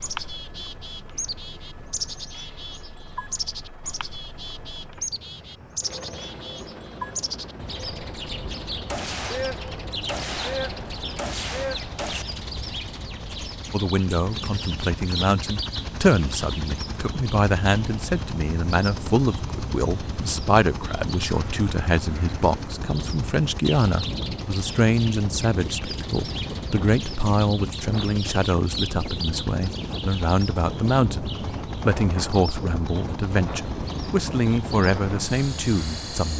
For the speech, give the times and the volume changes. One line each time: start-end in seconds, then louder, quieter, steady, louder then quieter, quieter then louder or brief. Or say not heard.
13.7-36.3 steady.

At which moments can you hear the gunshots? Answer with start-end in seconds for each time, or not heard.
8.9-12.2.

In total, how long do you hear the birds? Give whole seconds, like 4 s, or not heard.
36 s.